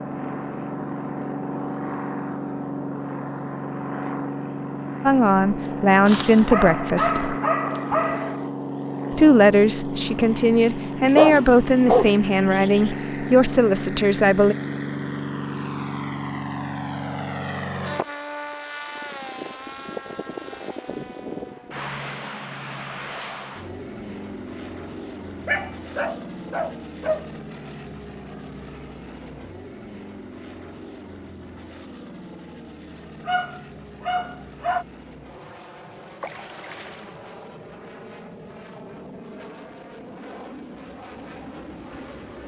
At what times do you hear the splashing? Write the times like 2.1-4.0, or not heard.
36.2-37.2.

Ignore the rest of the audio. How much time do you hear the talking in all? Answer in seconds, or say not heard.
8 s.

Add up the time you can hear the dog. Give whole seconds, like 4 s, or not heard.
8 s.